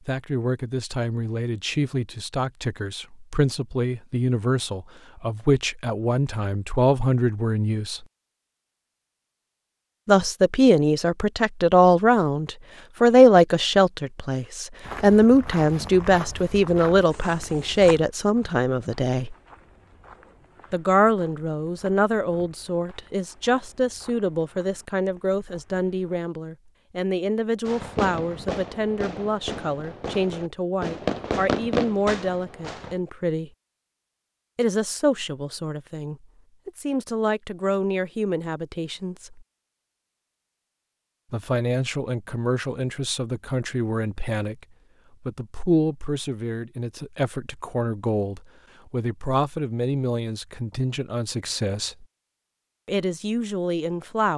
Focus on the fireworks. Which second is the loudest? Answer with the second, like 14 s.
32 s.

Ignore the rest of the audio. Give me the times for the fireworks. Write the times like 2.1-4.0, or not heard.
27.6-33.0.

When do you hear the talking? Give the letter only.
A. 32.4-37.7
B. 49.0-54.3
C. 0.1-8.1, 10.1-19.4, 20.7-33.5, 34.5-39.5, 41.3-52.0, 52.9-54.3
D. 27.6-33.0
C.